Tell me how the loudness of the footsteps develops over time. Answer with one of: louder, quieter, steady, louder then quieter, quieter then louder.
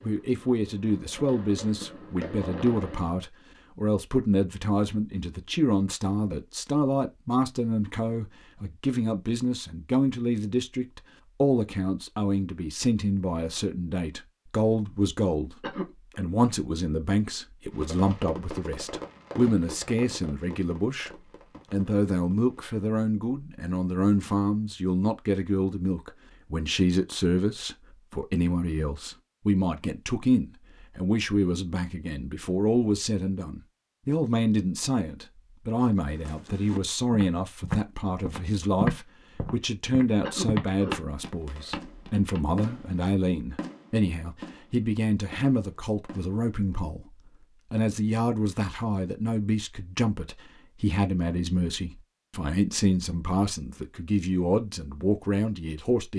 louder then quieter.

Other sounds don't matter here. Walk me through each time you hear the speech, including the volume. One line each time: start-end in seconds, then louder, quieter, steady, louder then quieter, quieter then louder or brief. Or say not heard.
0.0-21.1 steady
21.7-56.1 steady.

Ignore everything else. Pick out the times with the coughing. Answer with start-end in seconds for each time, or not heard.
15.6-16.1, 40.2-41.0.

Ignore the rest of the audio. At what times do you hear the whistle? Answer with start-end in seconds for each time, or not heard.
not heard.